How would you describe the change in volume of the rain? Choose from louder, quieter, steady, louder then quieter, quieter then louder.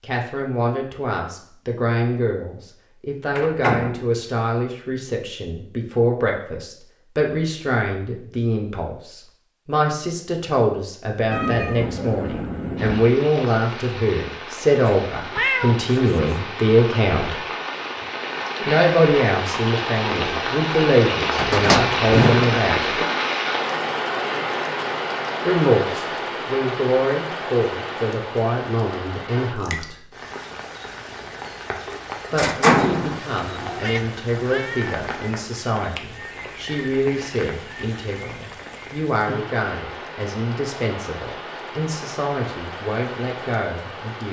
louder then quieter.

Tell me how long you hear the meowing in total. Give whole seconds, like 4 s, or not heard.
5 s.